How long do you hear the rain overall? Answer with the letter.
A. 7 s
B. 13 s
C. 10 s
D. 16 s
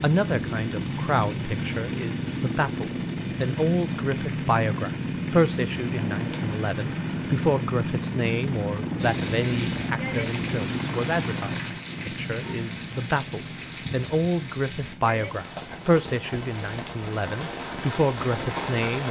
C.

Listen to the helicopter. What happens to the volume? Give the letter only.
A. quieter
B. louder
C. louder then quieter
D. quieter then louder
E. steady
A.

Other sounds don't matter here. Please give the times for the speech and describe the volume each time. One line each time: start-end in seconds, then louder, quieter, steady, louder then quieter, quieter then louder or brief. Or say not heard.
0.0-19.0 steady.